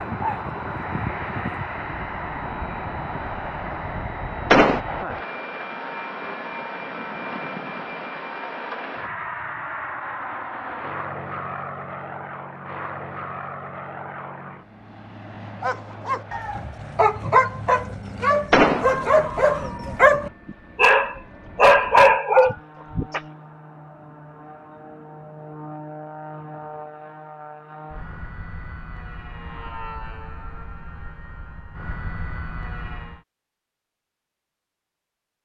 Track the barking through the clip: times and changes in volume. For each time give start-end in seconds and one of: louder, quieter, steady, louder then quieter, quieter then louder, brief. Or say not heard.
0.0-1.8 brief
15.6-23.2 louder.